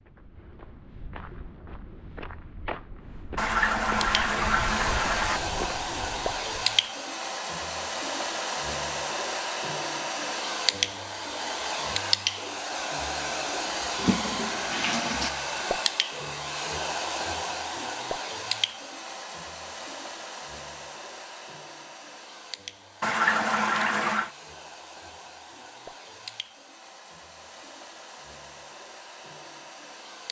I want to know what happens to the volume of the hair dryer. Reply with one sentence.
The loudness of the hair dryer goes down.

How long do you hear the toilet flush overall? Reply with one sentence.
You can hear the toilet flush for 5 seconds altogether.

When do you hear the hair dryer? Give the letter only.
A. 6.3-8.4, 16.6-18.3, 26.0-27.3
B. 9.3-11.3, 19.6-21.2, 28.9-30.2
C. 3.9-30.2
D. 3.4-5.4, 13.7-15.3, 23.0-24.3
C.